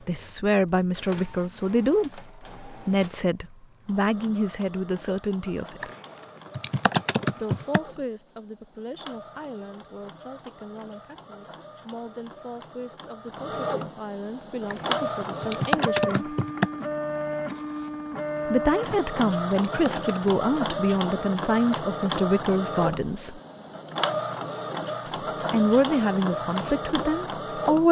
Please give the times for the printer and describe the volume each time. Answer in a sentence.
You can hear the printer from 0.0 to 27.8 s, getting louder.